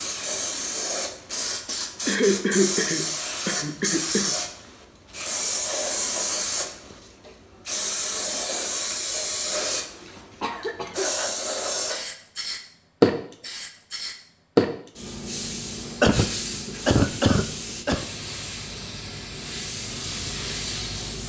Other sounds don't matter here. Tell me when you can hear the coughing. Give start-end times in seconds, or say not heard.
2.0-4.3, 10.4-11.1, 16.0-18.1.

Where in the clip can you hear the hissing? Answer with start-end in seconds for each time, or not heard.
0.0-21.2.